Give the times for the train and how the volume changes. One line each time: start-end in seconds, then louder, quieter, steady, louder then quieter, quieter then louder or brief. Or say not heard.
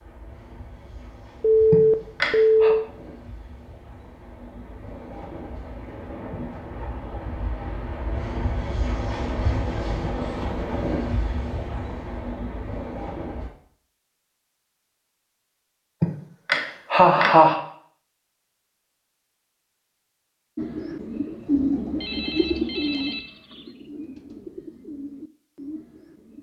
0.0-13.5 louder.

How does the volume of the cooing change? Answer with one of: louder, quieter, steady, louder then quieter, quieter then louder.
quieter.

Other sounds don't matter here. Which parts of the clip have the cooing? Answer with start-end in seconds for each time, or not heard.
20.6-26.3.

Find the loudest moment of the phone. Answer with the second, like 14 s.
2 s.